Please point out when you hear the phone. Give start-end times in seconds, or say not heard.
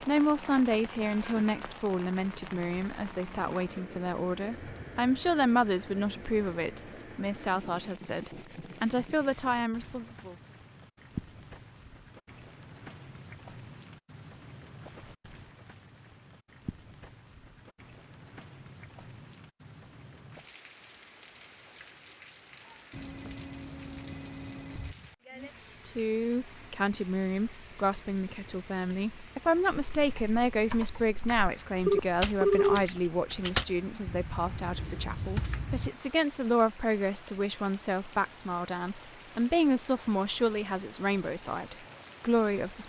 1.1-1.6, 22.9-24.9, 31.9-32.9.